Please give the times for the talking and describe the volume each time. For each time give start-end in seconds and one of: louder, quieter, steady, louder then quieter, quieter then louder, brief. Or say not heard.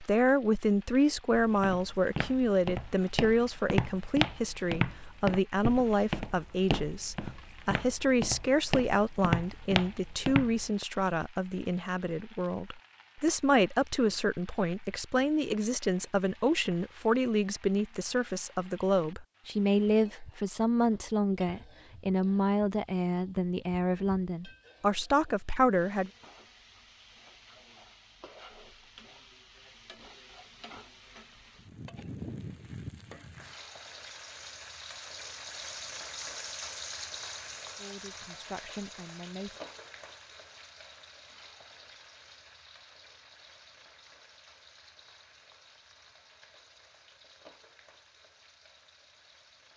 0.0-26.1 steady
37.8-39.5 brief.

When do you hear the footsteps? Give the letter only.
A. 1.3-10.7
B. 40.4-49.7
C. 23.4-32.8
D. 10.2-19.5
A.